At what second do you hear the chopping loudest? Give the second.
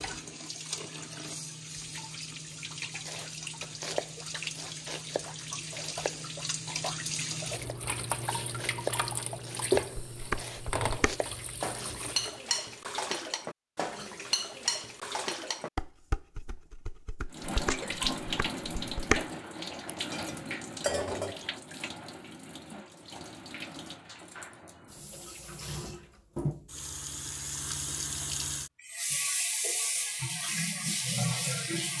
10 s.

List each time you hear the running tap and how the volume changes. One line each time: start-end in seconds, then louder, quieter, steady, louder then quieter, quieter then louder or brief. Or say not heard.
0.0-12.4 louder
17.3-31.9 quieter then louder.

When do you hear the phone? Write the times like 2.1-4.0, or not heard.
20.9-21.4.